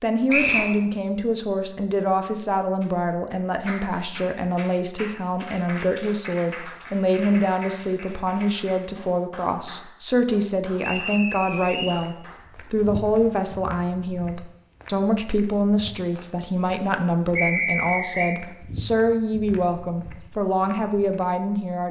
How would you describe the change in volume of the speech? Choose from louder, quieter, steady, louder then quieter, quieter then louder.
steady.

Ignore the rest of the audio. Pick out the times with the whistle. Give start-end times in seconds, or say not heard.
0.2-0.7, 10.8-11.9, 17.4-18.4.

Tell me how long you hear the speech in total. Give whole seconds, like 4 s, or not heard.
22 s.